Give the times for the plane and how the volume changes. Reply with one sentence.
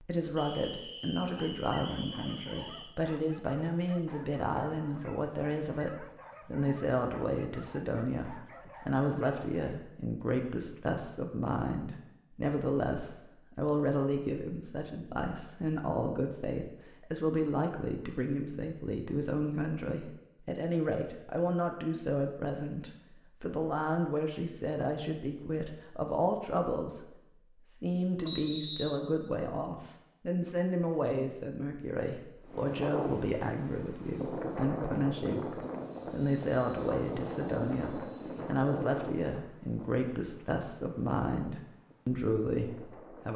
You can hear the plane from 32.4 to 43.3 s, getting quieter.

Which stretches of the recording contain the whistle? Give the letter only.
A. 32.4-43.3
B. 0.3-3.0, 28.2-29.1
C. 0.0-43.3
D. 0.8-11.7
B.